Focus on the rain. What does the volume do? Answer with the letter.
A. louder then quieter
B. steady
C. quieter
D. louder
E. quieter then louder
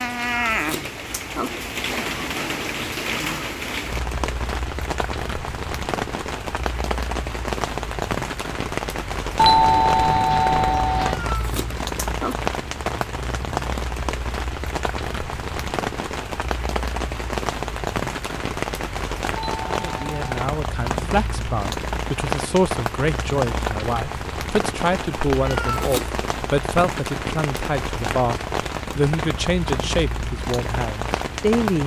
B.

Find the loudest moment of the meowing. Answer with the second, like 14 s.
26 s.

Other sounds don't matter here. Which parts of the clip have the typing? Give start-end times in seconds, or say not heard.
not heard.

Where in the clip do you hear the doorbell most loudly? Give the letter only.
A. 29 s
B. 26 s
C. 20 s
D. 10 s
D.